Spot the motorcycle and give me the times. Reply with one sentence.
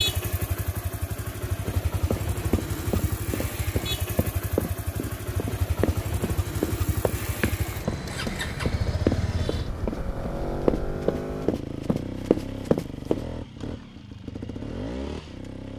The motorcycle can be heard from 0.0 to 15.7 s.